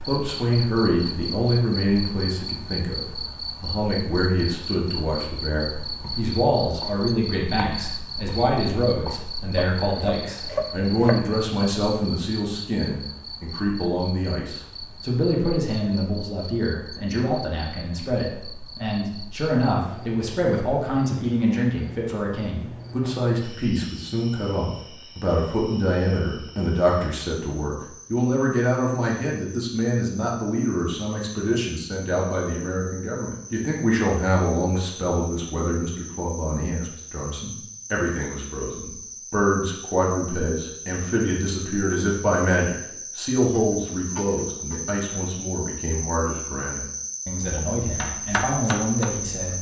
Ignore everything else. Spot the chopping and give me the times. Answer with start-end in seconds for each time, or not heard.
5.8-11.2, 47.4-49.5.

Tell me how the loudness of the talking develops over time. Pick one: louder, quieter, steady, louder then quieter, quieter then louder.
steady.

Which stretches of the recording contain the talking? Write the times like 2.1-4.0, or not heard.
0.0-49.5.